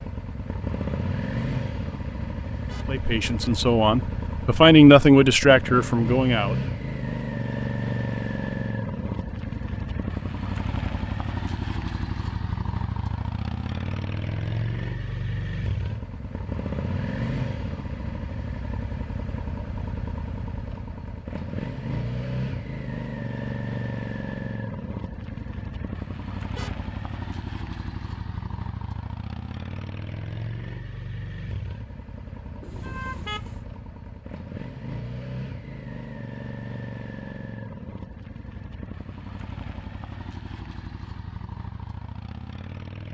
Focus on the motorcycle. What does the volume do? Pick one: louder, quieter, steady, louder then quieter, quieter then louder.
quieter.